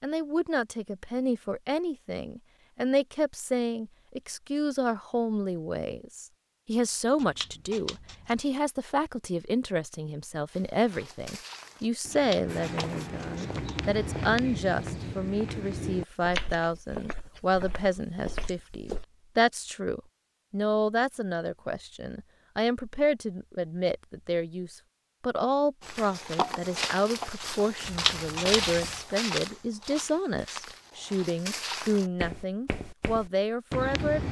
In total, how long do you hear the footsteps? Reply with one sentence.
You can hear the footsteps for 17 seconds altogether.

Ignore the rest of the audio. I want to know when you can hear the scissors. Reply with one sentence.
You can hear the scissors from 7.2 to 8.4 s, from 12.1 to 13.8 s and from 27.9 to 29.0 s.